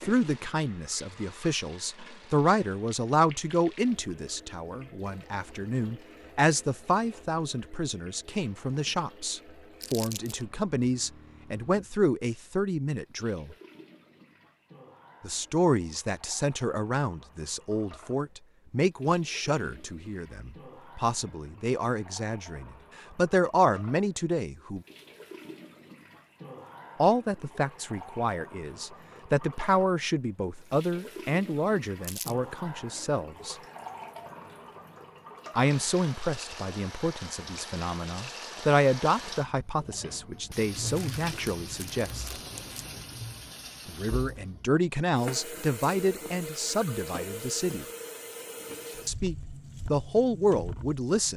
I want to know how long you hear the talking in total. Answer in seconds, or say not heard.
43 s.